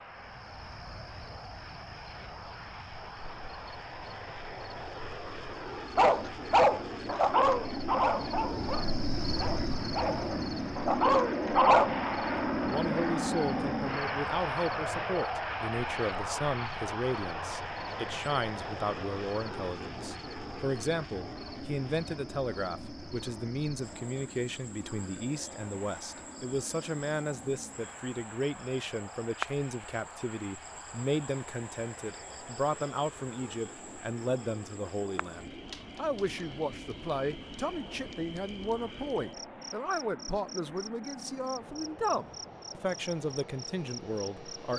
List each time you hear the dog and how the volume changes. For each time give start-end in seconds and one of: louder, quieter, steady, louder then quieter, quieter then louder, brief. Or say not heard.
6.0-11.9 quieter then louder.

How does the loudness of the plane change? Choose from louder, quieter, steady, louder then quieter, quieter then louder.
louder then quieter.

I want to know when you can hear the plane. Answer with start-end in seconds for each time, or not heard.
0.0-44.7.